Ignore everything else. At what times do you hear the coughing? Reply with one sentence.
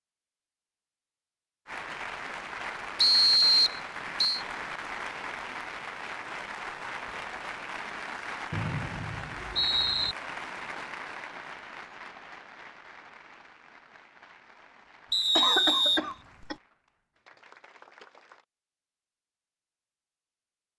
The coughing can be heard from 15.3 to 16.6 s.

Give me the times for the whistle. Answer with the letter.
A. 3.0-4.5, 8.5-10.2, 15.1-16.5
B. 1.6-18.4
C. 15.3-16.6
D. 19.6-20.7
A.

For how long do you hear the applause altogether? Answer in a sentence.
You can hear the applause for 17 seconds altogether.